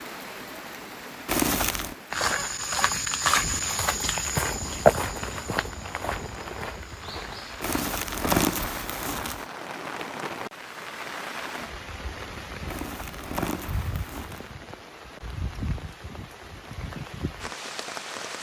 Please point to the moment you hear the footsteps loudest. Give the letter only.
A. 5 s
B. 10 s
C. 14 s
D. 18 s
A.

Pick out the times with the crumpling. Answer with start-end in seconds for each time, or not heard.
1.2-1.9, 7.6-9.4, 12.7-14.5.